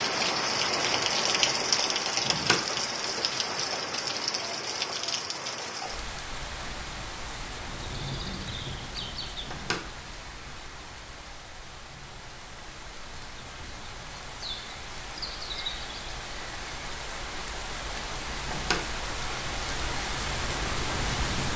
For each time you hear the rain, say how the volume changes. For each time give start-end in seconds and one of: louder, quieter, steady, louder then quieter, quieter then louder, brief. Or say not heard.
0.0-21.5 quieter then louder.